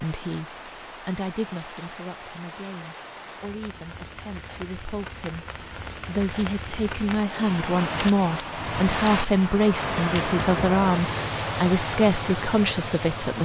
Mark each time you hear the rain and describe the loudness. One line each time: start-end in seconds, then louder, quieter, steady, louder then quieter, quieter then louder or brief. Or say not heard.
0.0-13.4 louder.